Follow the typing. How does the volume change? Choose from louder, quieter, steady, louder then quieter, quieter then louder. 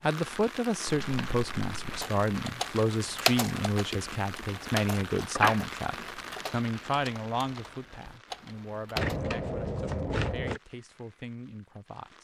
quieter.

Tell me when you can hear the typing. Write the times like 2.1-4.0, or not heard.
1.9-9.2.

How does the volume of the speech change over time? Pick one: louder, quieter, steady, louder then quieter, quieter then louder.
quieter.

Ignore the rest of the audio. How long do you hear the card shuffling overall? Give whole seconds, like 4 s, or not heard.
4 s.